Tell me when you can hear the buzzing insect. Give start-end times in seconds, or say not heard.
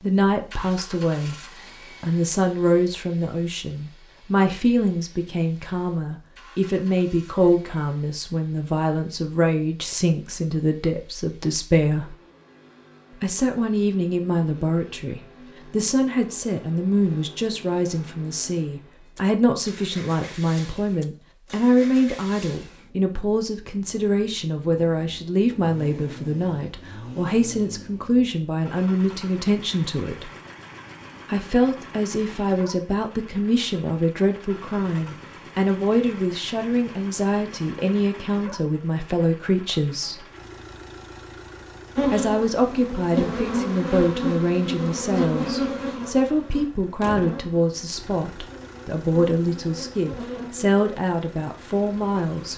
42.0-52.5.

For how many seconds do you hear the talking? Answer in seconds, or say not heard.
48 s.